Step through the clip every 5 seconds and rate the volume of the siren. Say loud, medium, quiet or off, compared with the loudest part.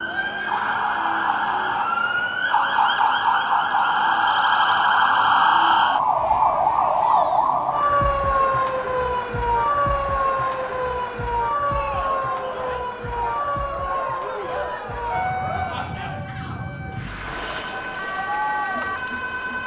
loud, loud, medium, medium.